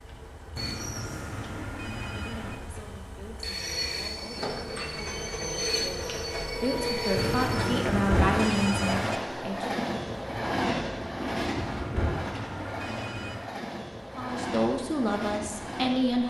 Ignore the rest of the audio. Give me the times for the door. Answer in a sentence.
The door can't be heard in this clip.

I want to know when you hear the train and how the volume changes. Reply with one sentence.
You can hear the train from 0.0 to 16.2 s, getting louder then quieter.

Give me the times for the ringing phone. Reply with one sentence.
The ringing phone can be heard from 0.6 to 2.5 s, from 7.2 to 9.2 s and from 11.6 to 13.5 s.